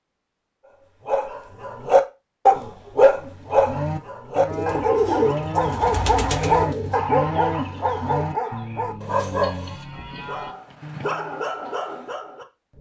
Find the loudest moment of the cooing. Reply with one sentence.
The loudest moment of the cooing is at 5 seconds.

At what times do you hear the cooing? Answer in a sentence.
You can hear the cooing from 4.5 to 7.0 s.